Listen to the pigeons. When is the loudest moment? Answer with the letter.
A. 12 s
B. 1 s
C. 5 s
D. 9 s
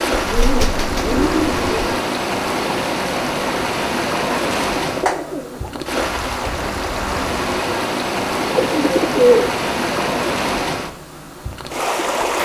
D.